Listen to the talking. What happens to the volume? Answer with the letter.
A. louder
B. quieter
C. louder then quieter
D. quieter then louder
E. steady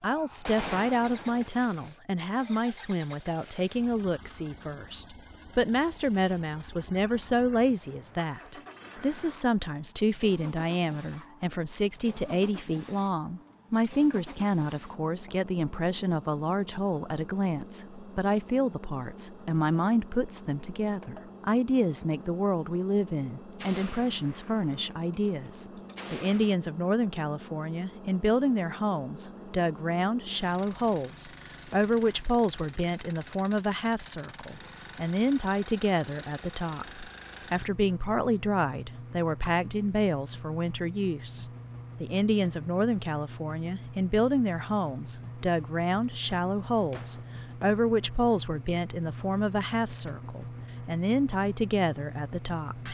E.